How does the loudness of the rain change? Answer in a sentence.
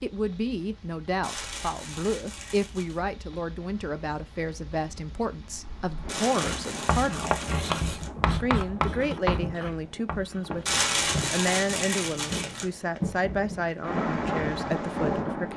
The loudness of the rain goes up.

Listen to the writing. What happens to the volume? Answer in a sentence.
The loudness of the writing goes up, then down.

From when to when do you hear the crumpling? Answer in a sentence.
The crumpling can be heard from 1.2 to 3.0 s, from 6.0 to 8.1 s and from 10.7 to 12.7 s.